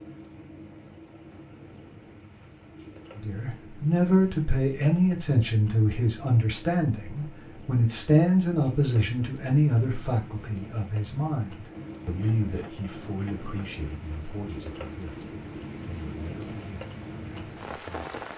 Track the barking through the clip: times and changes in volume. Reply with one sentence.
You can't hear the barking here.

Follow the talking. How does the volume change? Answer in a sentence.
The loudness of the talking goes down.